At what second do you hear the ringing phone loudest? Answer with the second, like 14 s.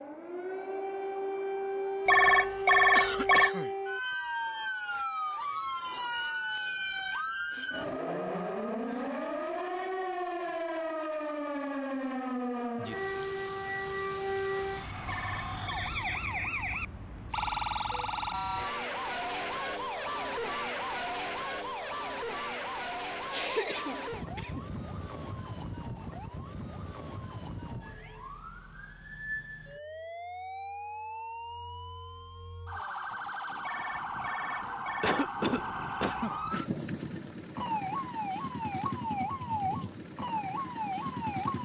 3 s.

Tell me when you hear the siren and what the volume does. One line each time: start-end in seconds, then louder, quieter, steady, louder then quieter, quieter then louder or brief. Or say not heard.
0.0-41.5 quieter then louder.